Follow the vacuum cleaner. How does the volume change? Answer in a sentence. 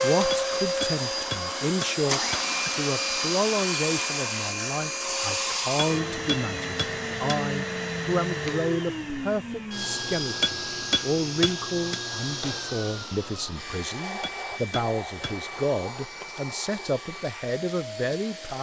The loudness of the vacuum cleaner goes down.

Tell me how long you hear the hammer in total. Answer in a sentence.
The hammer can be heard for 7 seconds in total.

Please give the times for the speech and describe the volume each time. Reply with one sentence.
You can hear the speech from 0.0 to 18.5 s, at a steady volume.